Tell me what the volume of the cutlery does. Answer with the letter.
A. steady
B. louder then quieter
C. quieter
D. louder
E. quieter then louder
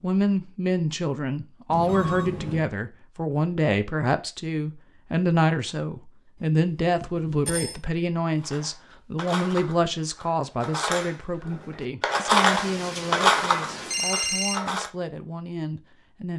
B.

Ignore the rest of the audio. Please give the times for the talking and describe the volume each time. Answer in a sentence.
You can hear the talking from 0.0 to 16.3 s, getting quieter.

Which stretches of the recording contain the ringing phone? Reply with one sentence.
You can hear the ringing phone from 1.7 to 2.6 s, from 6.8 to 7.8 s and from 12.4 to 14.6 s.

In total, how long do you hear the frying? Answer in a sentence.
You can't hear the frying here.